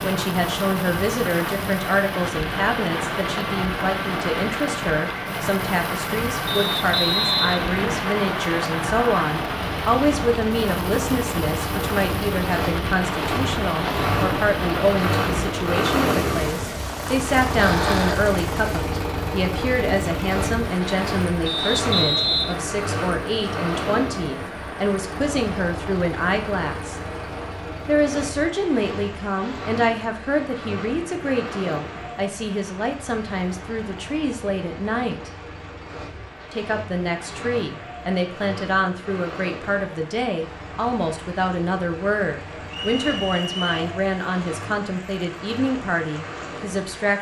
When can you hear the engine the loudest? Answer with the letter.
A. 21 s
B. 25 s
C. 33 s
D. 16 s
D.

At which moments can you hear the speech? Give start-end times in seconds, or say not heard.
0.0-27.0, 27.9-35.3, 36.5-47.1.